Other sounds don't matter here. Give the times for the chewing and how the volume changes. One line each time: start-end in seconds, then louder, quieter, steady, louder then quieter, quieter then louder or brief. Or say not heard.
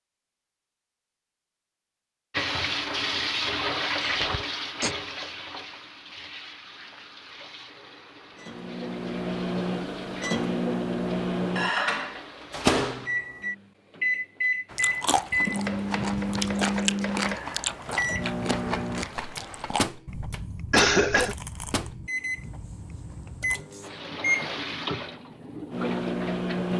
14.7-23.6 quieter.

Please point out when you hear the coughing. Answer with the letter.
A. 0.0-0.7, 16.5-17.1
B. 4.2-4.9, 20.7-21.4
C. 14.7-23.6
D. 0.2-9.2
B.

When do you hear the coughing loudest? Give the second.
21 s.